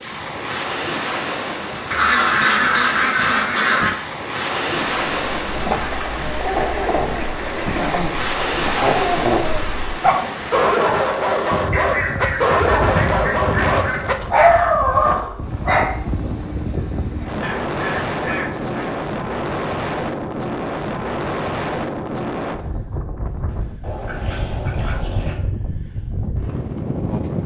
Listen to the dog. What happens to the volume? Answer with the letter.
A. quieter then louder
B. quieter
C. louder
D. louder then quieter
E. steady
C.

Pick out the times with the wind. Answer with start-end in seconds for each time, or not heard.
0.0-27.4.